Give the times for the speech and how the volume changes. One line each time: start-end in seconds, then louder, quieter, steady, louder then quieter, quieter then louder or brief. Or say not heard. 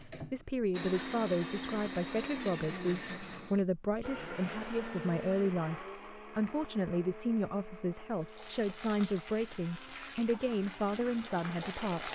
0.0-12.1 steady.